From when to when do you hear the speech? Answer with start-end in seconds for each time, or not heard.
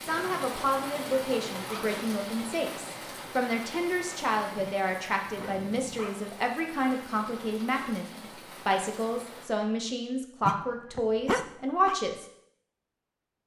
0.0-12.2.